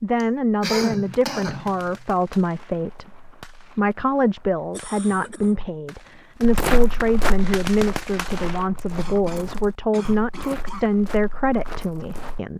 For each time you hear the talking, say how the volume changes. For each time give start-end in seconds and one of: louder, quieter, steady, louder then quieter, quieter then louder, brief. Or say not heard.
0.0-12.5 steady.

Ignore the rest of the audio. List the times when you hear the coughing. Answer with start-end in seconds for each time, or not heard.
0.2-2.0, 4.7-5.5, 8.9-10.9.